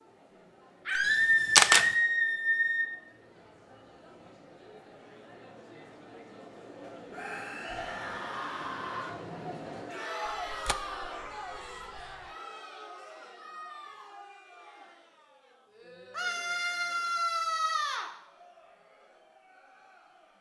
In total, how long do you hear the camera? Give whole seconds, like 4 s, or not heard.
3 s.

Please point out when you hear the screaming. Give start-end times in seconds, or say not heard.
0.8-2.9, 7.1-9.1, 16.1-18.1.